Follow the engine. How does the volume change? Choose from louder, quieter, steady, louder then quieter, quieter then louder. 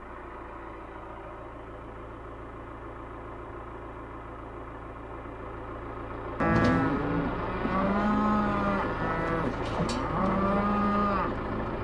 louder.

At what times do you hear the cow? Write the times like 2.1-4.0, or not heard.
6.4-11.7.